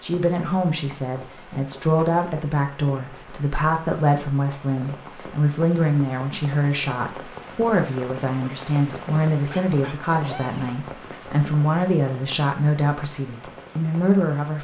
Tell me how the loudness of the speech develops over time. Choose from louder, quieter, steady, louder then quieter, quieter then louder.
steady.